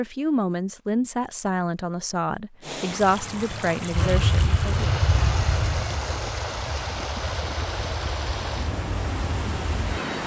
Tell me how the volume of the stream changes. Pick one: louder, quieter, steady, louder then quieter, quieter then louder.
steady.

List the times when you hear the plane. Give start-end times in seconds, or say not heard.
3.9-10.2.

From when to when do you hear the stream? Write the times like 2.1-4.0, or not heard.
2.6-10.2.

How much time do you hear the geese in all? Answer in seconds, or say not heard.
not heard.